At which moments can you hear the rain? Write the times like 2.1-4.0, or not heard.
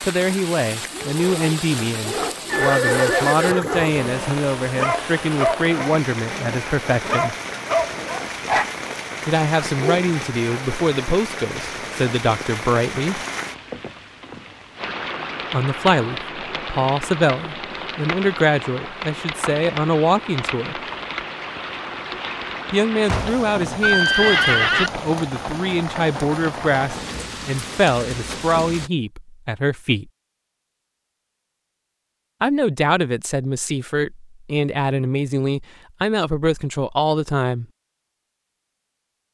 0.0-28.9.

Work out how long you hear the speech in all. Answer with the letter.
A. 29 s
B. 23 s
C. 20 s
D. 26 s
A.